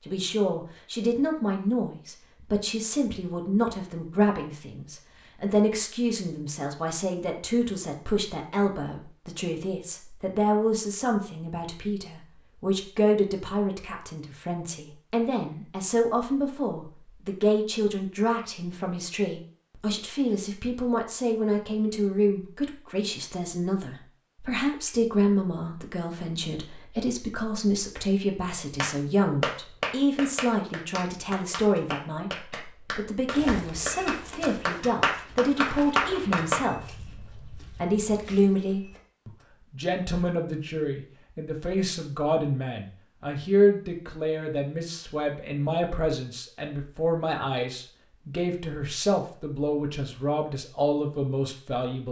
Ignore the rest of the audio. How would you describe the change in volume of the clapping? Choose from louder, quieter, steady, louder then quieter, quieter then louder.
quieter then louder.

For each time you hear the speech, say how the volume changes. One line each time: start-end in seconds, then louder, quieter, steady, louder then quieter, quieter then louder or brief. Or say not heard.
0.1-52.0 steady.